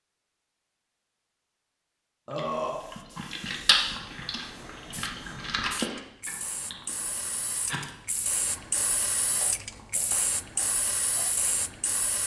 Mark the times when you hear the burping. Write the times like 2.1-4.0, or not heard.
2.2-2.8.